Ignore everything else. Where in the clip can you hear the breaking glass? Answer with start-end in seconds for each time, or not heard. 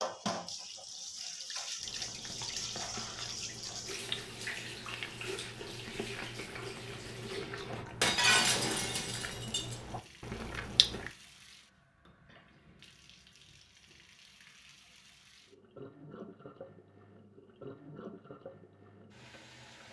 8.0-9.8.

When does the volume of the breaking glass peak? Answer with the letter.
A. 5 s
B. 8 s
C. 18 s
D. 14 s
B.